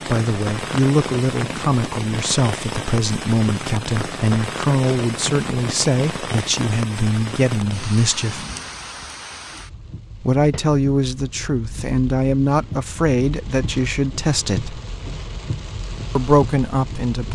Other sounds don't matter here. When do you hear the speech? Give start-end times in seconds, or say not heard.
0.1-8.4, 10.2-14.8, 16.1-17.3.